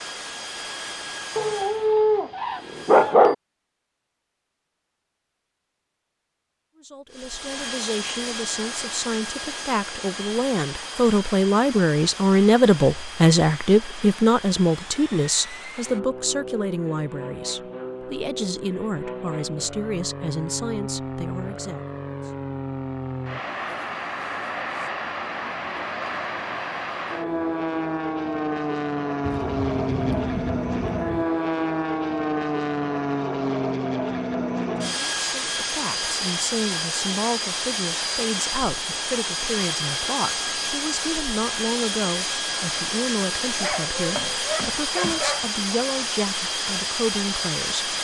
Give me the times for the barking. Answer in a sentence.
The barking can be heard from 1.4 to 3.4 s and from 43.5 to 45.5 s.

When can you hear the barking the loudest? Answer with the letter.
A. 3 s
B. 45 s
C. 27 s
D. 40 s
A.